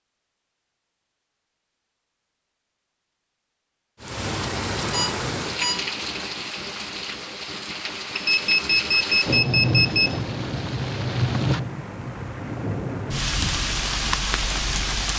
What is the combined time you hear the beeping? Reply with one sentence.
You can hear the beeping for 3 seconds altogether.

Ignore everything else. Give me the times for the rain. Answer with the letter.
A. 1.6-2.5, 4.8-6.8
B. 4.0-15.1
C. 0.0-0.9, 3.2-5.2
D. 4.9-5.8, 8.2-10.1
B.